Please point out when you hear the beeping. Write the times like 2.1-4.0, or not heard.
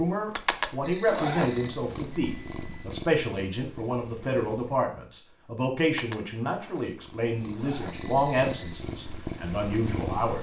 0.8-2.9, 7.8-8.8.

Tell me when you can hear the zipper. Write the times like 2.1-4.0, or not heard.
1.1-1.7, 7.5-8.2.